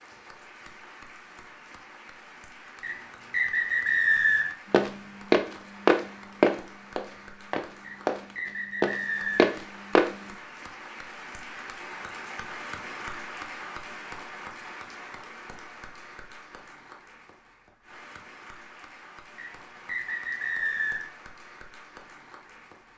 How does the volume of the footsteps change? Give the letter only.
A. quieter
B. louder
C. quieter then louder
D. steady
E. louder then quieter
C.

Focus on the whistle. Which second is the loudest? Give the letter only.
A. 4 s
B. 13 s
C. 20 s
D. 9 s
A.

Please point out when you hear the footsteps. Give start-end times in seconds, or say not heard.
4.7-10.2.